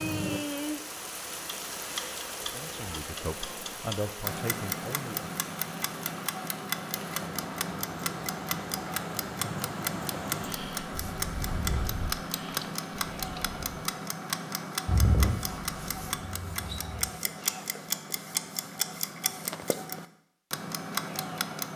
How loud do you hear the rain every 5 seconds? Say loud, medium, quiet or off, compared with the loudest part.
loud, loud, loud, off, off.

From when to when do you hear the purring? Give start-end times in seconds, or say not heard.
14.8-17.1.